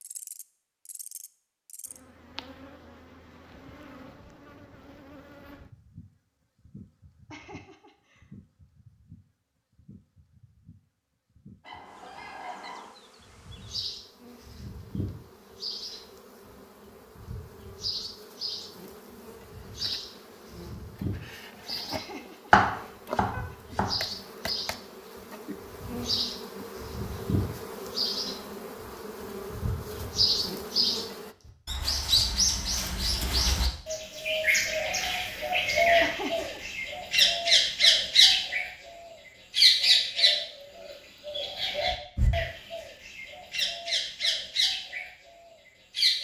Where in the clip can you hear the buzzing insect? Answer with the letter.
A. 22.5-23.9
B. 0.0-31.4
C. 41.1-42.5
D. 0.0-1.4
B.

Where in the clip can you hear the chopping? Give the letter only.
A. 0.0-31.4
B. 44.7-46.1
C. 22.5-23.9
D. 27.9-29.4
C.